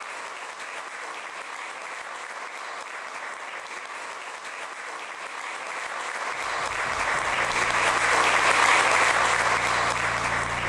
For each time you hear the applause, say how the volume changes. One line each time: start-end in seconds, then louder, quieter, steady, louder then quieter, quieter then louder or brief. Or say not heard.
0.0-10.6 louder.